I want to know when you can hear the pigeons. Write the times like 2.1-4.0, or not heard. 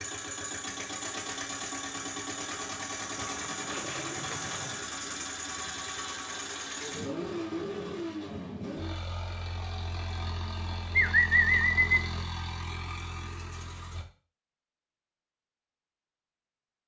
3.1-4.8, 10.4-12.1.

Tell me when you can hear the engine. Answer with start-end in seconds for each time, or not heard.
0.0-14.1.